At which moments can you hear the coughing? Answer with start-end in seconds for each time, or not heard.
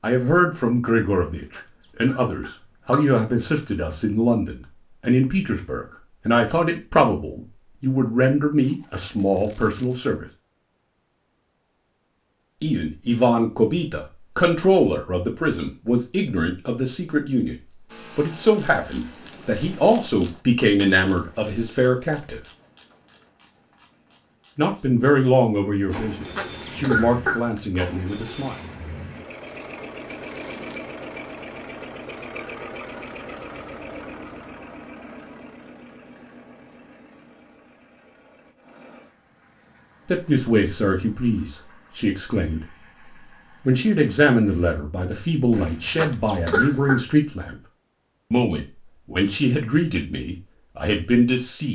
1.6-3.0, 26.1-27.7, 45.5-47.0.